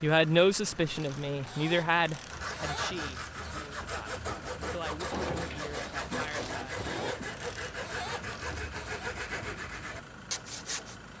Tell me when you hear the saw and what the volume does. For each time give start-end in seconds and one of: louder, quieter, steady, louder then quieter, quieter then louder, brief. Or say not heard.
2.3-10.9 steady.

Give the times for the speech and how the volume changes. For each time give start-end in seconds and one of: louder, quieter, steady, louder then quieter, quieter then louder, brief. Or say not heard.
0.0-6.5 quieter.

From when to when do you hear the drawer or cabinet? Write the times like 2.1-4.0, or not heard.
5.1-7.2.